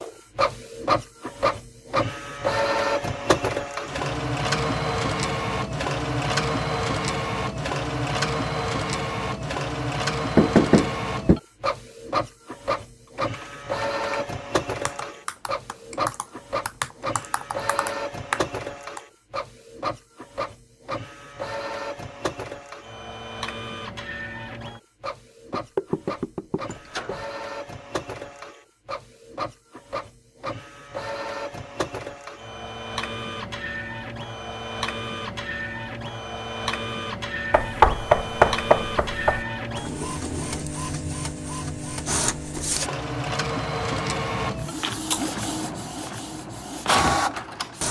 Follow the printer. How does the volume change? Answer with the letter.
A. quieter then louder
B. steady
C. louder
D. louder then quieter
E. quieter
A.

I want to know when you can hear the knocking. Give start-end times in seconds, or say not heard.
10.3-11.4, 25.5-27.2, 37.5-39.5.